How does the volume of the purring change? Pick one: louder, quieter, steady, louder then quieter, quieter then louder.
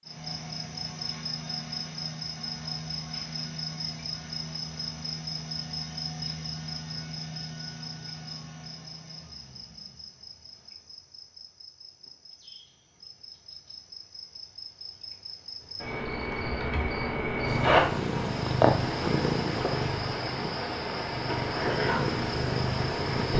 quieter then louder.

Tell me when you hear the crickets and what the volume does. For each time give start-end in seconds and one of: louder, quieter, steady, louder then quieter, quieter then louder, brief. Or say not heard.
0.0-23.3 quieter then louder.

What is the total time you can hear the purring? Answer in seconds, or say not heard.
6 s.